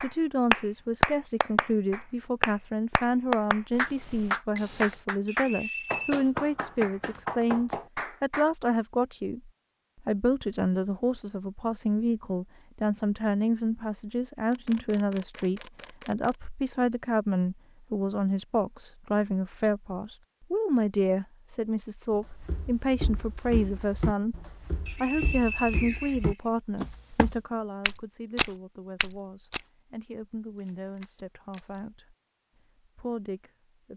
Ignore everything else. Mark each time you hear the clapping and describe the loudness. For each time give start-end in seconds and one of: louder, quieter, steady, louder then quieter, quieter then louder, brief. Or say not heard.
0.0-8.4 quieter.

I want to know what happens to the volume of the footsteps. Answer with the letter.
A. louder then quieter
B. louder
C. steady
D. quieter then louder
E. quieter
B.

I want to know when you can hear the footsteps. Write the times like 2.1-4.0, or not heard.
22.1-29.6.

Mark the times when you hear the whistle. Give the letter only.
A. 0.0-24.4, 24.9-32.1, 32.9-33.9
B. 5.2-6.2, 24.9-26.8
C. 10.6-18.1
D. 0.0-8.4
B.